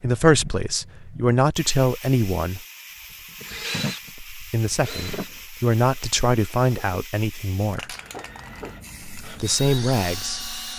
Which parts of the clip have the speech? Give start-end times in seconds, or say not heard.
0.0-2.6, 4.3-8.0, 9.2-10.4.